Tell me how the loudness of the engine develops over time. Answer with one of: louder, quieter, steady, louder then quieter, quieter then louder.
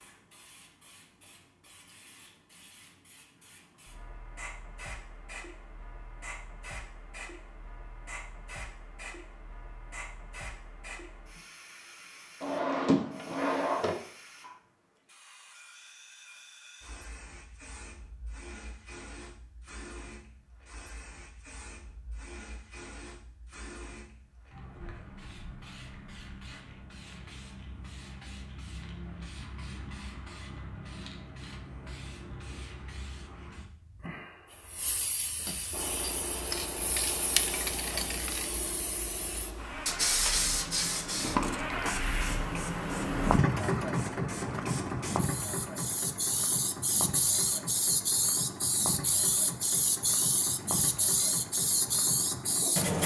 louder then quieter.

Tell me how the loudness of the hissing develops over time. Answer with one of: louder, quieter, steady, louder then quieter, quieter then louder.
louder.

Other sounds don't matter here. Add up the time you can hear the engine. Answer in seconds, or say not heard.
17 s.